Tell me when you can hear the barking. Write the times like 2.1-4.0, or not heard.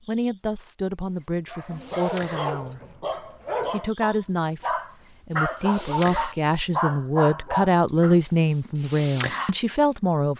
1.5-8.2.